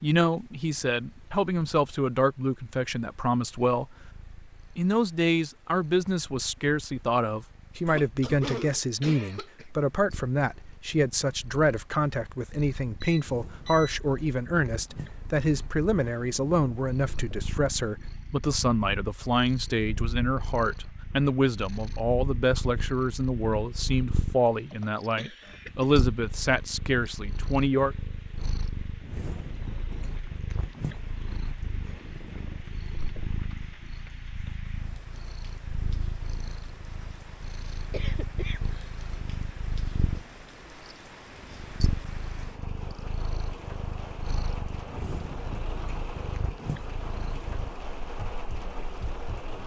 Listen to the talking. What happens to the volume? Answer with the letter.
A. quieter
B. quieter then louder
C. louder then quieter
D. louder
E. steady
E.